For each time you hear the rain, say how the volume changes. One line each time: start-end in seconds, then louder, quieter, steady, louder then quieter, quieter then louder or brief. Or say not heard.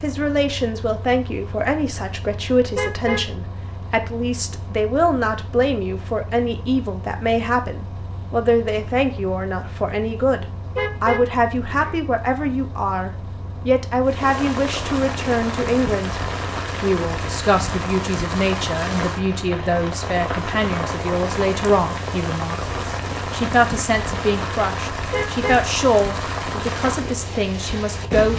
14.0-28.3 steady.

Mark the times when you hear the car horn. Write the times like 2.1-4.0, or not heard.
2.8-3.4, 10.8-12.0, 25.1-25.7.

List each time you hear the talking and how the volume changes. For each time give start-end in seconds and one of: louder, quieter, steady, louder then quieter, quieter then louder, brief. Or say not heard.
0.0-16.2 steady
16.8-28.3 steady.